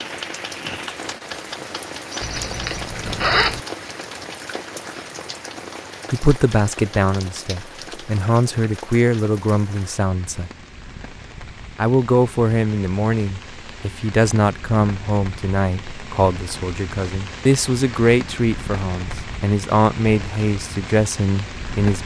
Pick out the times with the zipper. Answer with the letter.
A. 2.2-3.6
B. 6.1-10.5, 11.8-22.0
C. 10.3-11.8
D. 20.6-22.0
A.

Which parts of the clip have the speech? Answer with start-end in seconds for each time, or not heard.
6.1-10.5, 11.8-22.0.